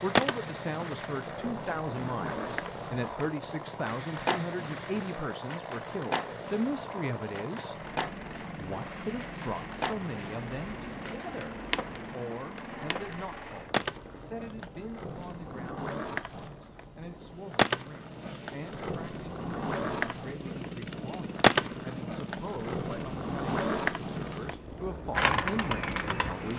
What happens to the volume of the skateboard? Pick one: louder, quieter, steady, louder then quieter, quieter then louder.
louder.